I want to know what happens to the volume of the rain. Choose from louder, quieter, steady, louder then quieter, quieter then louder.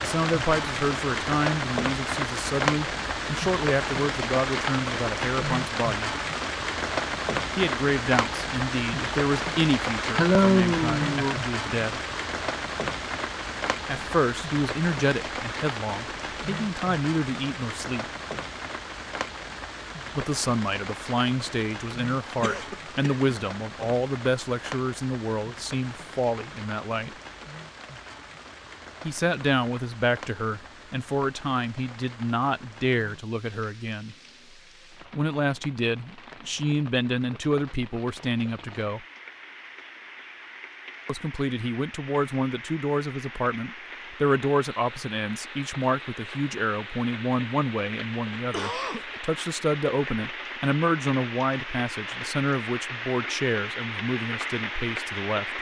quieter then louder.